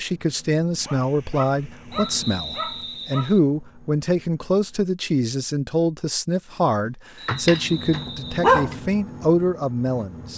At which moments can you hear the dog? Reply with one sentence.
The dog can be heard from 0.8 to 3.3 s and from 6.8 to 8.8 s.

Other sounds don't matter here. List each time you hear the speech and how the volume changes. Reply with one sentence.
You can hear the speech from 0.0 to 10.3 s, at a steady volume.